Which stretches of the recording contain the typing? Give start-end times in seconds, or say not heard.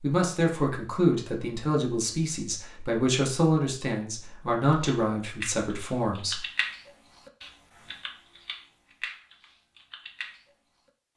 5.0-10.4.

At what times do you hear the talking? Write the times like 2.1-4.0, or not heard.
0.0-6.5.